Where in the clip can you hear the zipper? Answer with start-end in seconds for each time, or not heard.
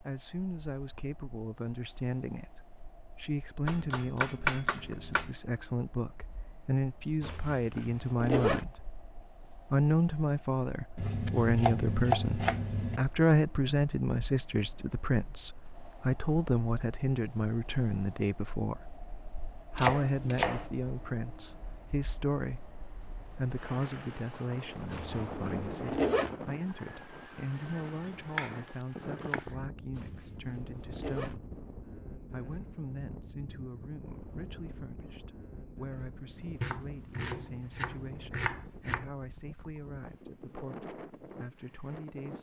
7.2-8.7, 24.9-26.4, 29.9-31.4.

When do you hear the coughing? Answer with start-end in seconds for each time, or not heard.
not heard.